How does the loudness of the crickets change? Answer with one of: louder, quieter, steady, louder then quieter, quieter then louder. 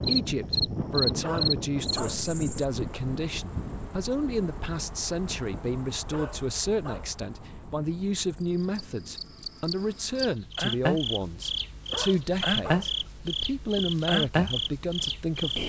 quieter then louder.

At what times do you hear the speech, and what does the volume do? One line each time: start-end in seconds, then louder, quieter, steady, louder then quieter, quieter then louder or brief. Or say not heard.
0.1-15.6 steady.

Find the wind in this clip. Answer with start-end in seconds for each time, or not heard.
0.0-9.5.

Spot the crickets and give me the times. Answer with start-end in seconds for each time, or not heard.
0.0-15.6.